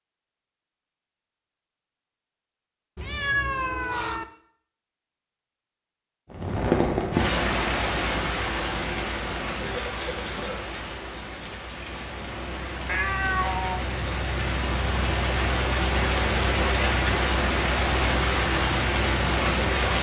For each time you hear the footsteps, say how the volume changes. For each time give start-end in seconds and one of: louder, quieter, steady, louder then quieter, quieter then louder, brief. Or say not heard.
not heard.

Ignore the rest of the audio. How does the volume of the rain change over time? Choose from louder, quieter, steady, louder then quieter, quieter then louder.
quieter then louder.